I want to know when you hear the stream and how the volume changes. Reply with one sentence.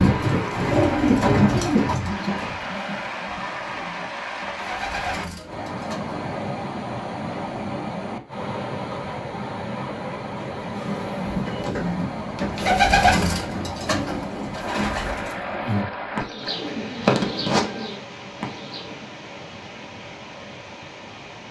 The stream can be heard from 0.0 to 21.4 s, getting quieter.